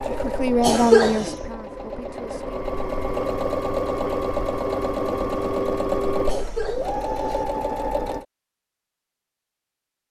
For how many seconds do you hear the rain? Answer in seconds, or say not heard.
not heard.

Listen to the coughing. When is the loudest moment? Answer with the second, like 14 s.
1 s.